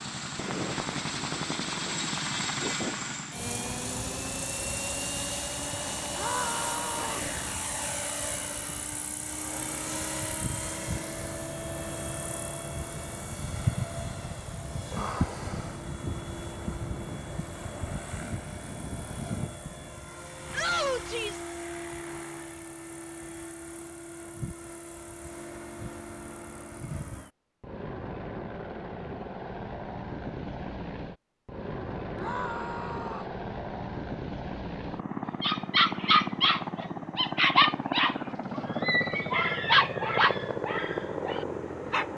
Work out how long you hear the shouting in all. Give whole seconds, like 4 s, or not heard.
3 s.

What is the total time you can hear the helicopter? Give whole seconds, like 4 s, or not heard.
42 s.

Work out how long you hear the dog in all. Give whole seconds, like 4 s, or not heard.
7 s.